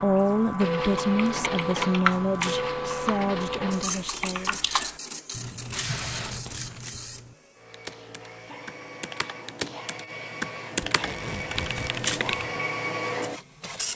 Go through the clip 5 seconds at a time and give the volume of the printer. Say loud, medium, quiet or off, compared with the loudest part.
loud, medium, loud.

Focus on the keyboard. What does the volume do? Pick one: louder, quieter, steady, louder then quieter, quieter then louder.
quieter then louder.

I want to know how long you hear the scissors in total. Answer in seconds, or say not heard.
3 s.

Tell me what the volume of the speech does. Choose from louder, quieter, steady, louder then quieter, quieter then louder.
quieter.